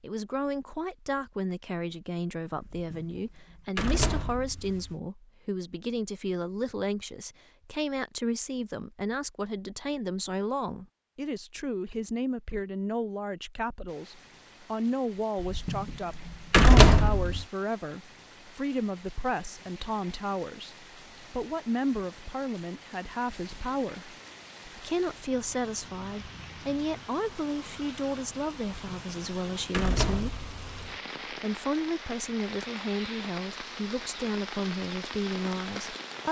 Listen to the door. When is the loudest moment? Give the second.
17 s.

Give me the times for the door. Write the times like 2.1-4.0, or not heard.
2.6-5.0, 15.4-17.4, 28.9-30.8.